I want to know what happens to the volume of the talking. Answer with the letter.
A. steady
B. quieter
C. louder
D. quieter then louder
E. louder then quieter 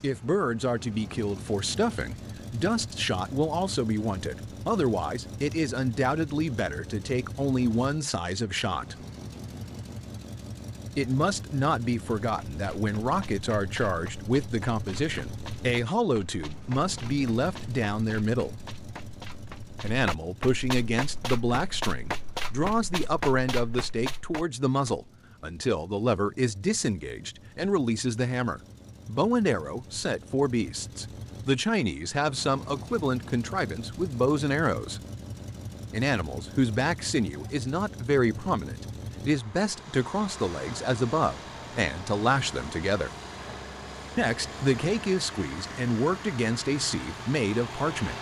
A.